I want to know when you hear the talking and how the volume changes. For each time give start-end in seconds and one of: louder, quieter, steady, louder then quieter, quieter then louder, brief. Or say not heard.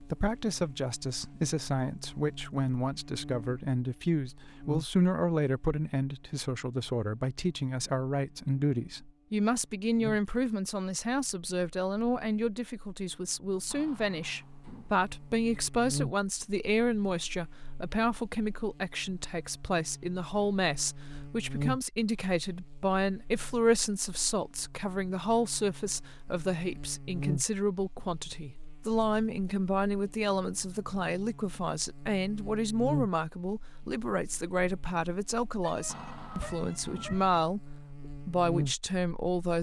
0.0-39.5 steady.